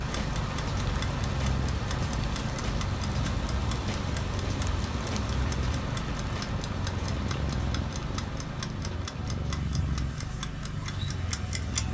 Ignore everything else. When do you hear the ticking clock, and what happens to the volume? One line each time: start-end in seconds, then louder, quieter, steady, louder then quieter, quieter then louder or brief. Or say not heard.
0.1-11.9 steady.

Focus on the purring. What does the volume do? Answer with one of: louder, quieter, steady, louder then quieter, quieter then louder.
steady.